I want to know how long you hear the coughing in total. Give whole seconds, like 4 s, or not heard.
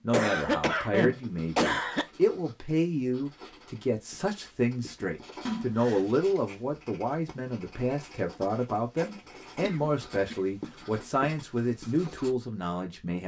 4 s.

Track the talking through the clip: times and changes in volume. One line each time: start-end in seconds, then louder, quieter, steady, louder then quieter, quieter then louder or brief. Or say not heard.
0.0-13.2 steady.